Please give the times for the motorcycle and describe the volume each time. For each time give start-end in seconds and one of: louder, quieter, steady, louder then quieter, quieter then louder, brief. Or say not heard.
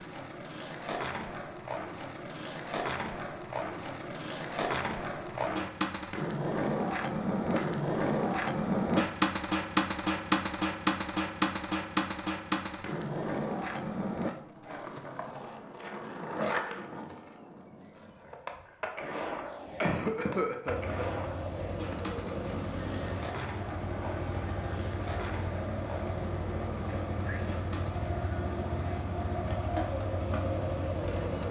20.6-31.4 steady.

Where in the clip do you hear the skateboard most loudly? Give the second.
9 s.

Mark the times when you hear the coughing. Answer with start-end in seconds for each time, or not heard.
19.8-21.1.